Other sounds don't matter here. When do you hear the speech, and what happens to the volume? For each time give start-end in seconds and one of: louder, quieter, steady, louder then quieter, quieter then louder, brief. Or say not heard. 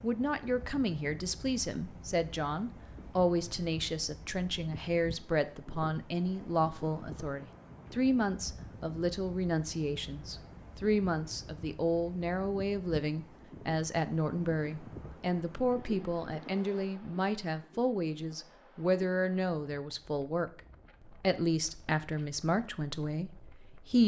0.0-24.0 steady.